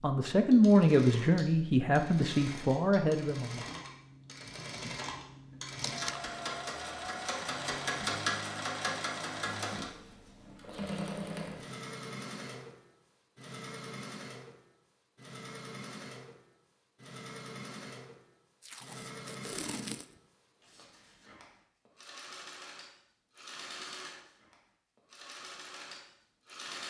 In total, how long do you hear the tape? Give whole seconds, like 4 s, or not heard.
2 s.